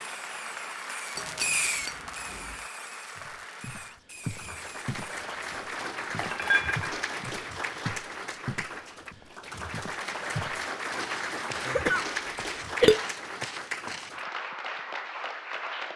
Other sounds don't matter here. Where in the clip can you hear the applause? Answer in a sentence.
The applause can be heard from 0.0 to 15.9 s.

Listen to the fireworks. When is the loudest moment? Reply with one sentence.
The loudest moment of the fireworks is at 2 seconds.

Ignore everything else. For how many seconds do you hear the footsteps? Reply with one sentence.
The footsteps can be heard for 11 seconds in total.